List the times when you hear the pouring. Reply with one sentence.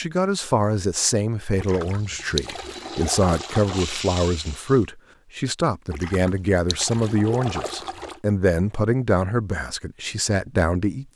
The pouring can be heard from 1.6 to 4.0 s and from 5.9 to 8.2 s.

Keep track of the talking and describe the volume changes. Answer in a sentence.
The volume of the talking stays about the same.